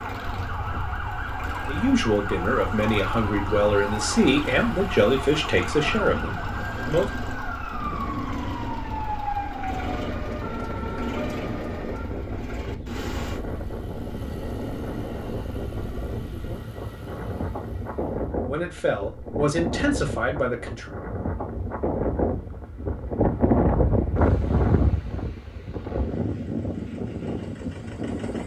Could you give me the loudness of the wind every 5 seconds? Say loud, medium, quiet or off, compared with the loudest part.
quiet, quiet, medium, medium, loud, medium.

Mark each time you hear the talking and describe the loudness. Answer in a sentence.
You can hear the talking from 1.6 to 7.1 s, at a steady volume; and briefly from 18.4 to 20.9 s.